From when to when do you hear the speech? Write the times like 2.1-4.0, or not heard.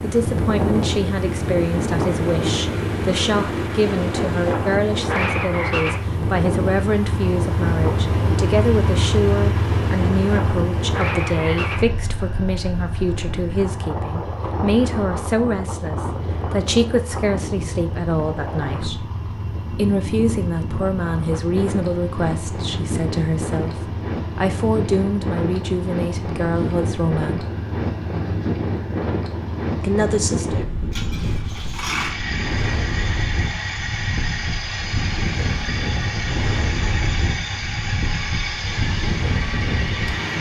0.0-19.1, 19.8-27.4, 29.8-30.6.